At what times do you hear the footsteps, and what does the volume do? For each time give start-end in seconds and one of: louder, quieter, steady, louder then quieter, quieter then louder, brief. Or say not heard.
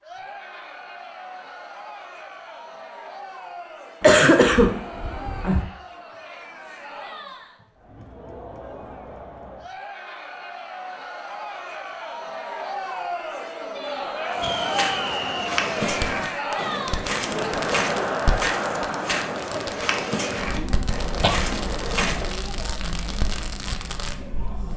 14.3-22.4 steady.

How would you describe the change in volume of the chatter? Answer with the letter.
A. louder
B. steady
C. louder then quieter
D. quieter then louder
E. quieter
C.